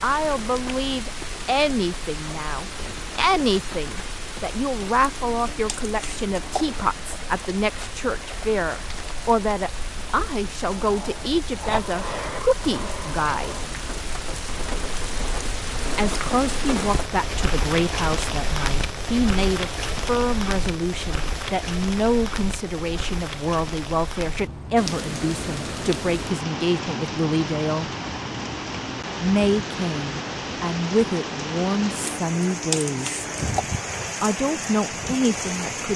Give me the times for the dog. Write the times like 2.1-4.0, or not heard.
not heard.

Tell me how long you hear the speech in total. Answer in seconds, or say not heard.
31 s.